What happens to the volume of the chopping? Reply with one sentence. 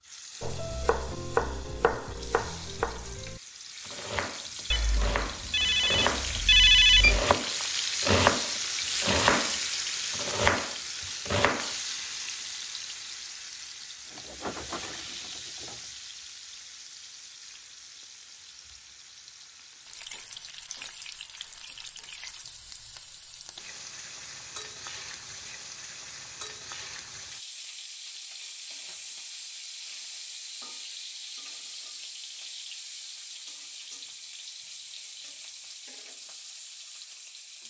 The volume of the chopping goes down, then up.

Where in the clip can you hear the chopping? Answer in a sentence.
You can hear the chopping from 0.4 to 11.8 s.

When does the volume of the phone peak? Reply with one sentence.
The loudest moment of the phone is at 7 seconds.